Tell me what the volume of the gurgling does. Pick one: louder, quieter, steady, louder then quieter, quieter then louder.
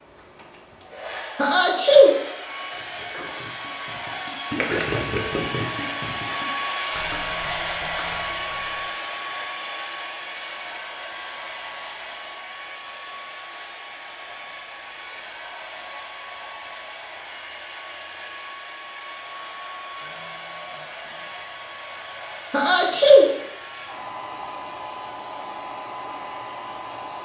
louder then quieter.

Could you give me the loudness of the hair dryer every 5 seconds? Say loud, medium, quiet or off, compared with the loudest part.
medium, loud, medium, medium, medium, medium.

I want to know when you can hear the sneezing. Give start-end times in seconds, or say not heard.
1.4-2.1, 22.5-23.3.